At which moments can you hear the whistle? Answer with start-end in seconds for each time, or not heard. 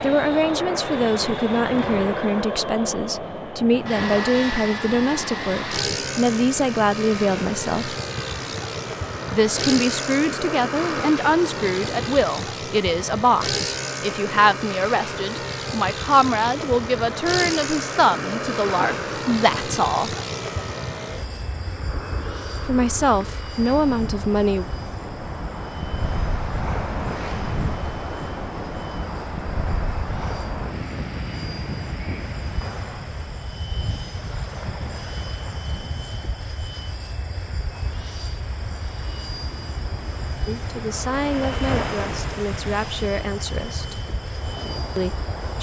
not heard.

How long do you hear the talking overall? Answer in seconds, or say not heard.
25 s.